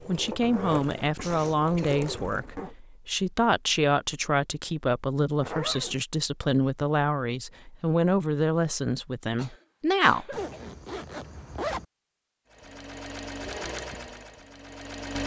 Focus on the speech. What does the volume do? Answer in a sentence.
The volume of the speech stays about the same.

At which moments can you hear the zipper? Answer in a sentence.
The zipper can be heard from 0.4 to 2.8 s, from 5.4 to 6.0 s and from 10.3 to 11.8 s.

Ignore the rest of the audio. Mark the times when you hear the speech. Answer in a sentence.
You can hear the speech from 0.1 to 10.3 s.